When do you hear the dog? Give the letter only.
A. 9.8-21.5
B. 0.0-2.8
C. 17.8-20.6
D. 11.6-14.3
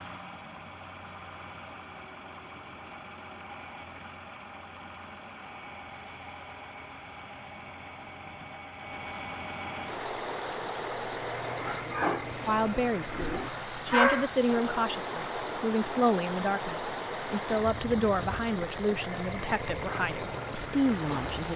D.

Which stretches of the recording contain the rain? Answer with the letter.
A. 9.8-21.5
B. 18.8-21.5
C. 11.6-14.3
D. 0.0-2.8
A.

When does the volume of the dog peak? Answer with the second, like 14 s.
14 s.